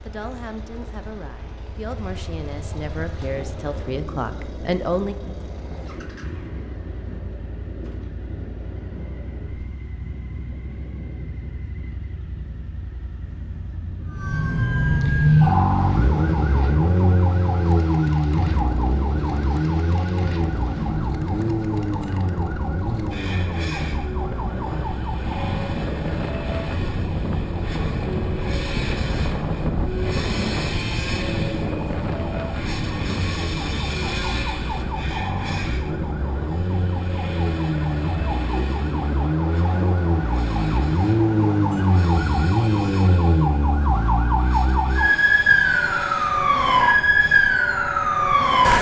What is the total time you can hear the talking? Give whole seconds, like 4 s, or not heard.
5 s.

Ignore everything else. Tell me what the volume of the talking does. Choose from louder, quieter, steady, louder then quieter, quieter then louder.
louder.